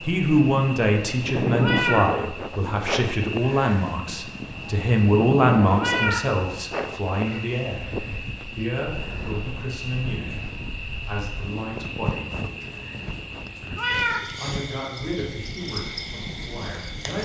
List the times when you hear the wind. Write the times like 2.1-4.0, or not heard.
0.0-17.2.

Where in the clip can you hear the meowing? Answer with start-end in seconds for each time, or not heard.
1.6-2.1, 5.8-6.3, 13.8-14.2.